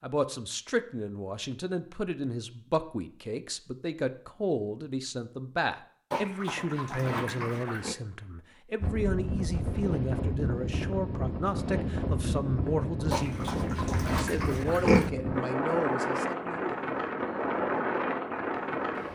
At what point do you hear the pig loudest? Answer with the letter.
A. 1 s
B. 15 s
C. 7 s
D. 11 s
B.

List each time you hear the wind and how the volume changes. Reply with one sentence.
The wind can be heard from 8.8 to 19.1 s, at a steady volume.